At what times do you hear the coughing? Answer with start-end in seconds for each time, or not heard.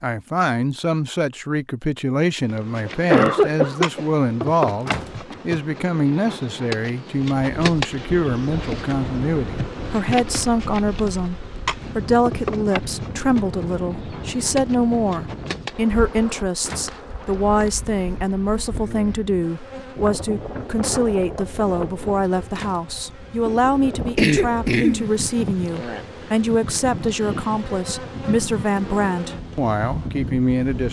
2.9-4.0, 24.1-25.5.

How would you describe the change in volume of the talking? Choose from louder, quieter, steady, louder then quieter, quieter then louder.
steady.